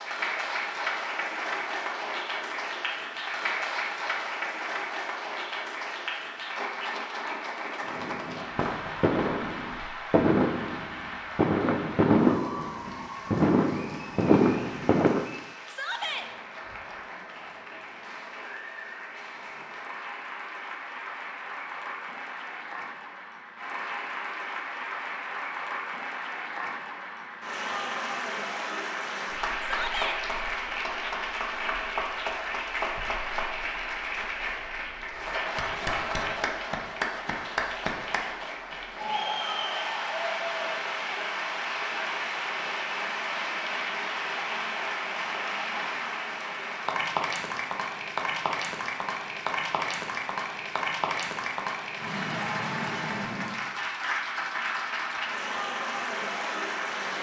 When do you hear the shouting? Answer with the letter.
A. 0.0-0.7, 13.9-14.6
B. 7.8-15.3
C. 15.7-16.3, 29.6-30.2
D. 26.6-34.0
C.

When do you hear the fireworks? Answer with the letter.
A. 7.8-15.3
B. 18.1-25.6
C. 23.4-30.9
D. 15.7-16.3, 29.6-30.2
A.